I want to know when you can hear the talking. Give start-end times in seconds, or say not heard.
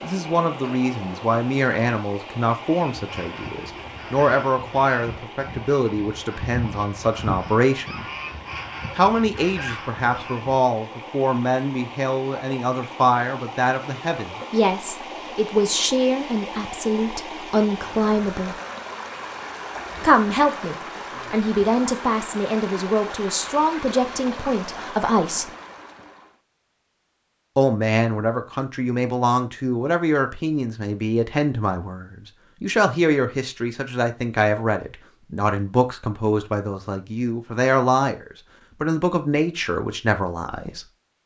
0.0-8.1, 8.9-18.6, 20.0-25.5, 27.6-40.9.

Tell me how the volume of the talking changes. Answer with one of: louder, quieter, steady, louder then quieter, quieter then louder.
steady.